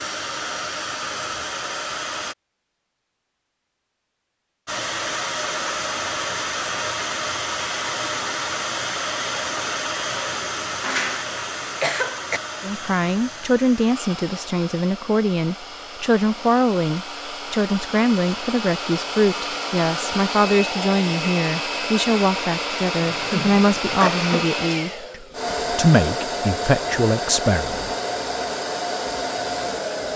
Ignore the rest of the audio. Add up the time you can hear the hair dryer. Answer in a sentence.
The hair dryer can be heard for 28 seconds in total.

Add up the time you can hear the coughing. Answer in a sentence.
You can hear the coughing for 3 seconds altogether.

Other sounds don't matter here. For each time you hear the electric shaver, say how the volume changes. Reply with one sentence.
You can't hear the electric shaver here.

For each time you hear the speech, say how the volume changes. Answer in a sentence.
You can hear the speech from 12.6 to 27.9 s, at a steady volume.